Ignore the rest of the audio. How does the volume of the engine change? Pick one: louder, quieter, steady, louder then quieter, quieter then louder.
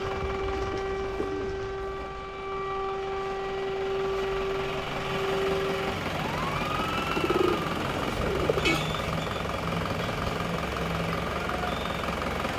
louder.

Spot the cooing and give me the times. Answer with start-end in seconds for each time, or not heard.
0.0-1.9, 7.1-8.8.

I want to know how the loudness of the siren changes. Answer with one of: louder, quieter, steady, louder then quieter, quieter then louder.
quieter.